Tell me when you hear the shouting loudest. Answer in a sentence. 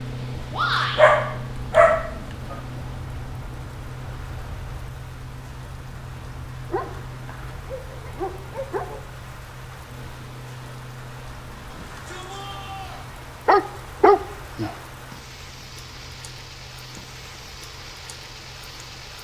The volume of the shouting peaks at 1 second.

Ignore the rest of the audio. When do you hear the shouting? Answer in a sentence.
You can hear the shouting from 0.5 to 1.1 s and from 11.7 to 13.0 s.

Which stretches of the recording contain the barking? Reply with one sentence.
You can hear the barking from 0.9 to 2.5 s, from 6.7 to 9.0 s and from 13.4 to 14.7 s.